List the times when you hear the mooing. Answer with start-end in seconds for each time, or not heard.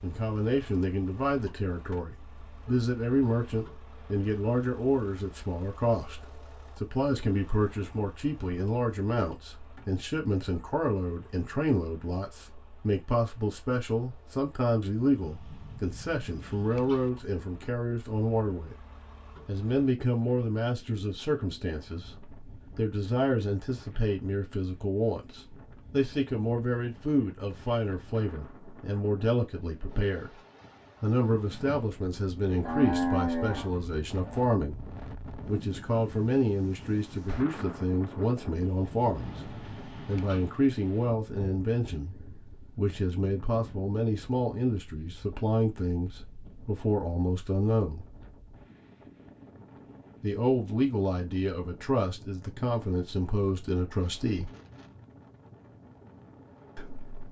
32.5-34.5.